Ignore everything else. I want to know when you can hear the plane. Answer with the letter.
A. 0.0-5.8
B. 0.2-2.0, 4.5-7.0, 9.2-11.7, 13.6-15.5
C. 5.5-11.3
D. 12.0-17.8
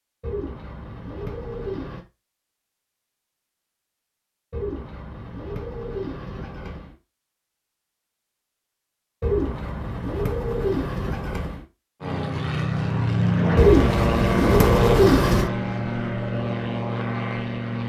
D.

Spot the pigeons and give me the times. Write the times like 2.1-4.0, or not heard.
0.2-2.0, 4.5-7.0, 9.2-11.7, 13.6-15.5.